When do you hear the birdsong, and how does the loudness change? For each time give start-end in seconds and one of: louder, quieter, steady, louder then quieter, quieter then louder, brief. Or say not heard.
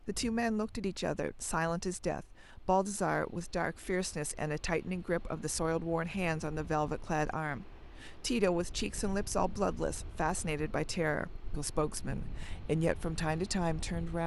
not heard.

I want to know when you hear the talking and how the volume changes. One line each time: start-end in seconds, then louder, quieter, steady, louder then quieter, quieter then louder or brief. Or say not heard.
0.1-14.2 steady.